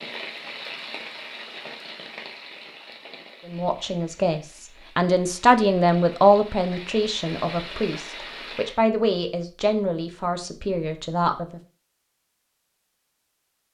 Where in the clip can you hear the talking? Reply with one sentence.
The talking can be heard from 3.5 to 11.6 s.